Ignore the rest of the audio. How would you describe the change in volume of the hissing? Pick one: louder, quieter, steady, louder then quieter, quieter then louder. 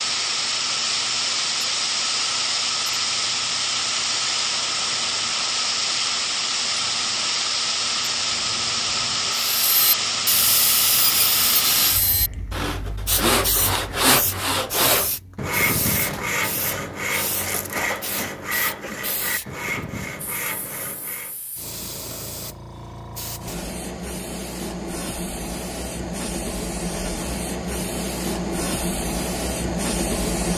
quieter then louder.